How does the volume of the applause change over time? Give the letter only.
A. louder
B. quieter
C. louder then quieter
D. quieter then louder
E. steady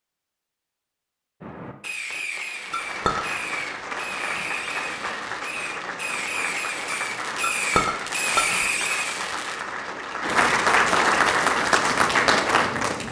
A.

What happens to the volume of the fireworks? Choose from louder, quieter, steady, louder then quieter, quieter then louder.
louder.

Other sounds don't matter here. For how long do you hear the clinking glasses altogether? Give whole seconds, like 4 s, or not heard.
2 s.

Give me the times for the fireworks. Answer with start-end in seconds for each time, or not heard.
1.4-9.7.